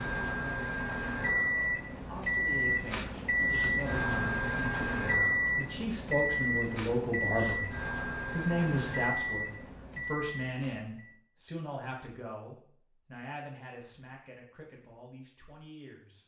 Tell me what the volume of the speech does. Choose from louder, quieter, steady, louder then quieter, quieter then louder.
louder then quieter.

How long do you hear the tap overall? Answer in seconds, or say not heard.
not heard.